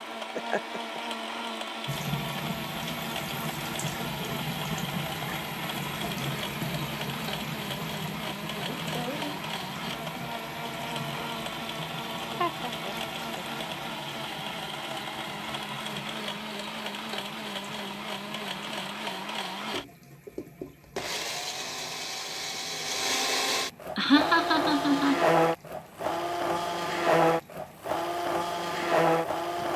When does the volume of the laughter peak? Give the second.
24 s.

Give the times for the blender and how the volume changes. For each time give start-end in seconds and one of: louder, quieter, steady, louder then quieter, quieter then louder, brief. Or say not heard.
0.0-29.7 louder.